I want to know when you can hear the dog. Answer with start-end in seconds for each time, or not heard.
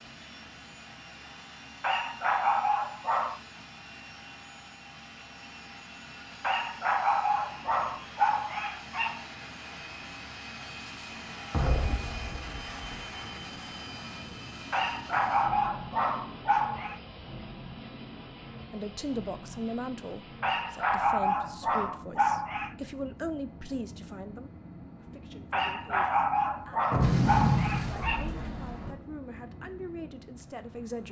1.8-3.4, 6.4-9.2, 14.7-17.0, 20.4-22.8, 25.5-28.3.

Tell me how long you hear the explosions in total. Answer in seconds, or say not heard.
3 s.